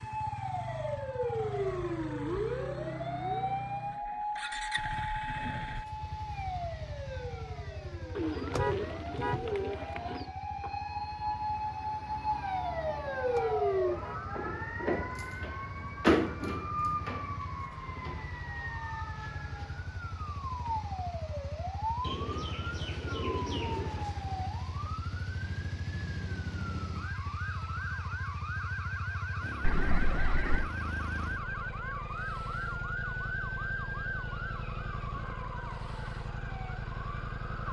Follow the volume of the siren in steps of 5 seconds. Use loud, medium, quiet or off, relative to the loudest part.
loud, medium, loud, loud, medium, medium, medium, medium.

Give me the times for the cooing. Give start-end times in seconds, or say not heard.
8.2-10.3, 22.0-24.1.